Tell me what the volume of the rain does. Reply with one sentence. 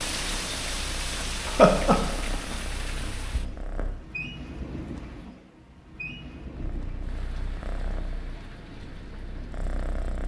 The loudness of the rain goes down.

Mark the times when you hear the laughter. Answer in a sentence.
You can hear the laughter from 1.4 to 2.5 s.